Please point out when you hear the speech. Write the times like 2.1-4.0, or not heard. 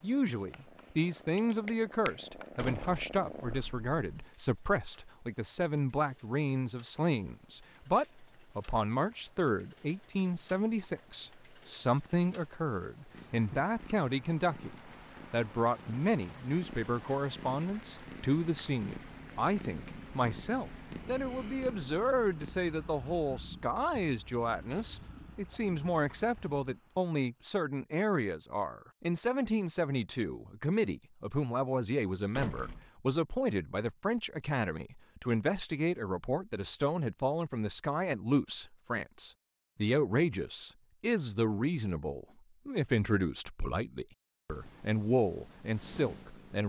0.0-46.6.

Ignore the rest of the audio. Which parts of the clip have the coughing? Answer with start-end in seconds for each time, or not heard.
not heard.